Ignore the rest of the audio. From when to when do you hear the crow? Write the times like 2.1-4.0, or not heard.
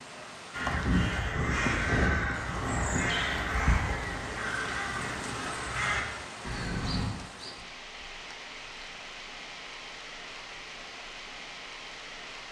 0.5-7.1.